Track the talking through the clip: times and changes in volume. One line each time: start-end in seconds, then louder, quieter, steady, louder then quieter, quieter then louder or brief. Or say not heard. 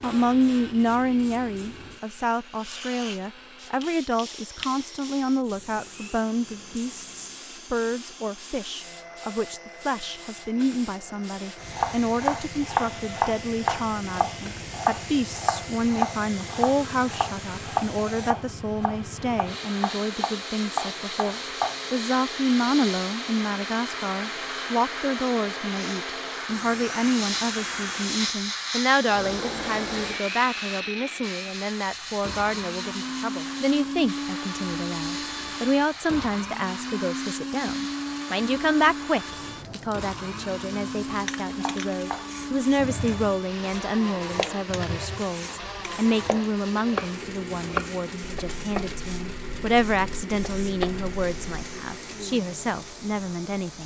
0.0-53.8 steady.